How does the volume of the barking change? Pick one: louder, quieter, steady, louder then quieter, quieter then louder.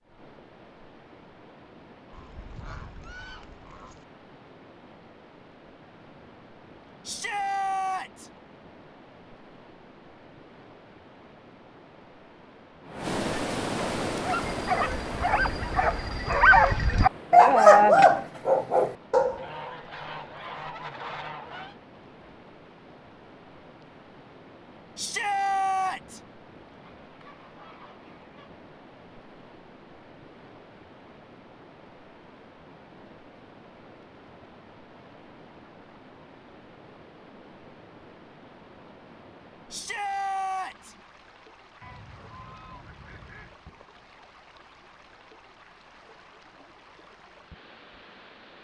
louder then quieter.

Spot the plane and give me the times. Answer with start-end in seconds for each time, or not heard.
not heard.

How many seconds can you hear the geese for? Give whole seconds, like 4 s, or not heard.
8 s.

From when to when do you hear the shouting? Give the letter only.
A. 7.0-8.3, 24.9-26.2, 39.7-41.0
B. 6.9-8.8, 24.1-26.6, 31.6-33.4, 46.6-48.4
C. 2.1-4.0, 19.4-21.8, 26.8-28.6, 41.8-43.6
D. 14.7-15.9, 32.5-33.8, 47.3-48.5
A.